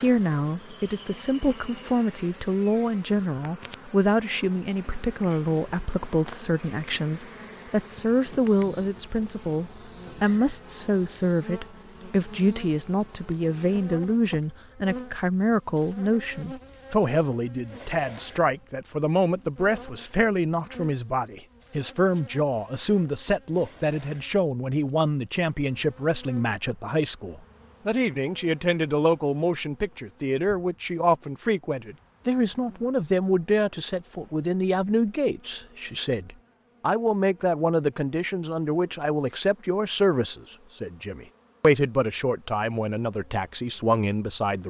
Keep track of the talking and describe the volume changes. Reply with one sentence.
The volume of the talking stays about the same.